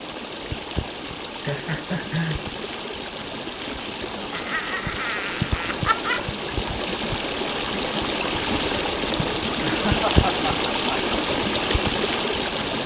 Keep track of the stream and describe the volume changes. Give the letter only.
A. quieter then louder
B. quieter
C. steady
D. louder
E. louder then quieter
D.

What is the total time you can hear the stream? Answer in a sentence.
The stream can be heard for 13 seconds in total.